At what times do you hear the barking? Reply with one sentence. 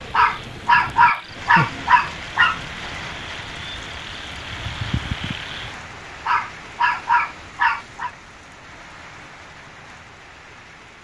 The barking can be heard from 0.1 to 2.6 s and from 6.2 to 8.1 s.